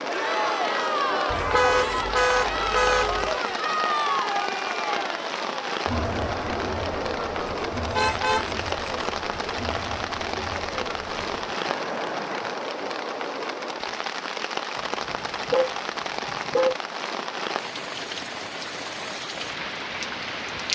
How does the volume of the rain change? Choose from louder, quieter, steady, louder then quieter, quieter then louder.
steady.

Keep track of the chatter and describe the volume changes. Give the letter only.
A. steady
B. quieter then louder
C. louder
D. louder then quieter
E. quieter
E.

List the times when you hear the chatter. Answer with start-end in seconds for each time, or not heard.
0.1-12.7.